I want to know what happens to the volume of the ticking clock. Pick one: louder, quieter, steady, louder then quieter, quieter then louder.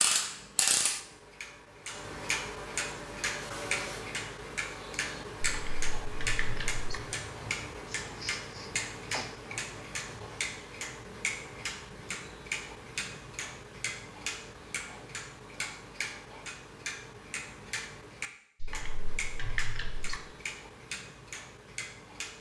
quieter.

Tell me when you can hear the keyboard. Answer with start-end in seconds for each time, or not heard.
5.5-7.0, 18.6-20.2.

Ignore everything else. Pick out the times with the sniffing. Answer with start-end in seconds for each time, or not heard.
7.8-9.3.